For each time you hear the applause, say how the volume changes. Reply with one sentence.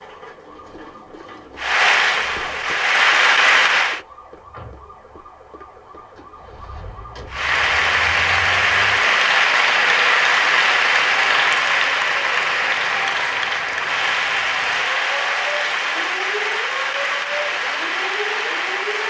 The applause can be heard briefly from 1.6 to 4.0 s; and from 7.3 to 19.0 s, getting quieter.